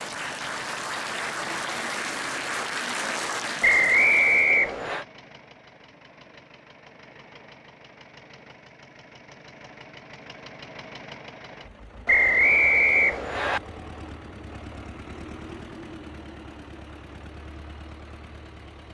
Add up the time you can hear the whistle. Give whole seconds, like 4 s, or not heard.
3 s.